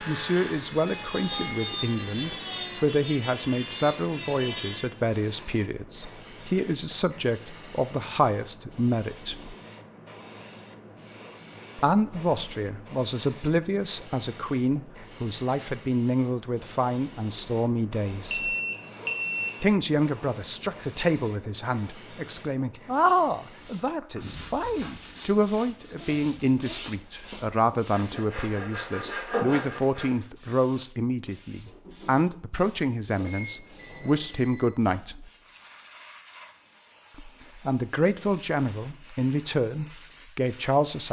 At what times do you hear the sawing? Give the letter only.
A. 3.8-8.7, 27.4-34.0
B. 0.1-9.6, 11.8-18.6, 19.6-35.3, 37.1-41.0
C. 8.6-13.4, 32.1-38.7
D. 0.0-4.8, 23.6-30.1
D.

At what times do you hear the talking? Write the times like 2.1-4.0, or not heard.
0.1-9.6, 11.8-18.6, 19.6-35.3, 37.1-41.0.